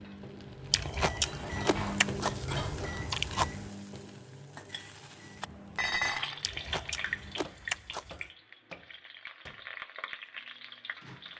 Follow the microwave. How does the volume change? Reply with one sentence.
The loudness of the microwave goes down.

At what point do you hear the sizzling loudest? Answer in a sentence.
The volume of the sizzling peaks at 7 seconds.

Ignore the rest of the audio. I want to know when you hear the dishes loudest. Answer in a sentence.
The volume of the dishes peaks at 6 seconds.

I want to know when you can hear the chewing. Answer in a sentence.
You can hear the chewing from 0.7 to 3.5 s and from 6.4 to 8.3 s.